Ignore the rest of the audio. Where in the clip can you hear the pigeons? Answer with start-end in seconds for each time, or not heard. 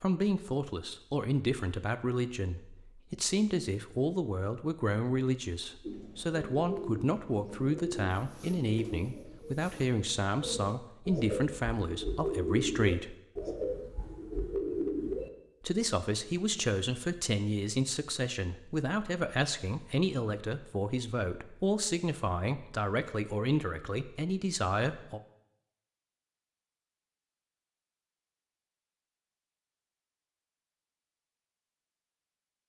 5.8-15.3.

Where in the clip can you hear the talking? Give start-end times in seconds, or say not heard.
0.0-13.2, 15.6-25.2.